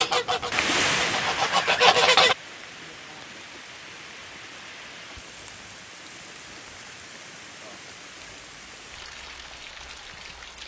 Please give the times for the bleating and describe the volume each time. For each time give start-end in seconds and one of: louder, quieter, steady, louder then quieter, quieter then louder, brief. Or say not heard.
not heard.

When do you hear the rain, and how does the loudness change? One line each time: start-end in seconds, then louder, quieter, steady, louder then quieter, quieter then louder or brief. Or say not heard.
0.1-10.6 quieter.